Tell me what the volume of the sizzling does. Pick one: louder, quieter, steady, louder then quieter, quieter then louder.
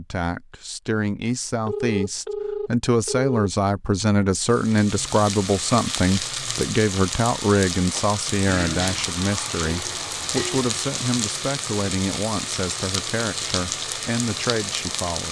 steady.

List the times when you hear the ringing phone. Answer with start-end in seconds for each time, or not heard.
1.2-3.5.